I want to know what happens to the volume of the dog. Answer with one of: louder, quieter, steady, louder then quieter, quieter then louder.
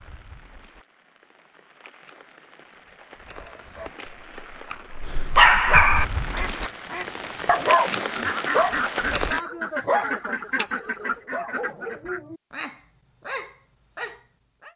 louder then quieter.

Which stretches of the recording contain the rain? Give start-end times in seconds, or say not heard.
0.0-9.4.